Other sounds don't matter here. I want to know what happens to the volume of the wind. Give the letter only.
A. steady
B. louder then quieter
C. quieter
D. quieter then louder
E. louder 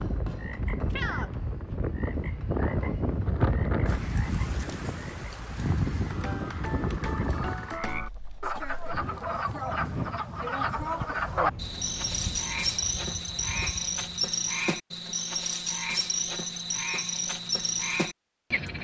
C.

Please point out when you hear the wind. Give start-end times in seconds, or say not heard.
0.0-14.1.